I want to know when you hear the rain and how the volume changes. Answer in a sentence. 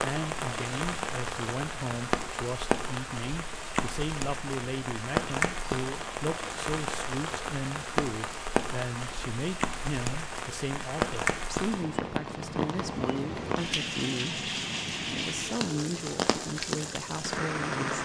You can hear the rain from 0.0 to 18.0 s, at a steady volume.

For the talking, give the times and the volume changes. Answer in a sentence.
The talking can be heard from 0.0 to 18.0 s, at a steady volume.